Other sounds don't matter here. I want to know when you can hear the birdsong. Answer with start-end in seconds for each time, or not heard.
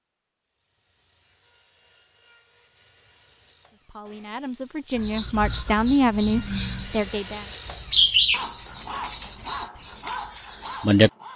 4.9-11.3.